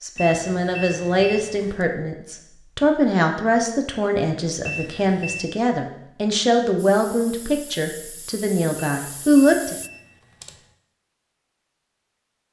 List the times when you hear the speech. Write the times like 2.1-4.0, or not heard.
0.0-9.8.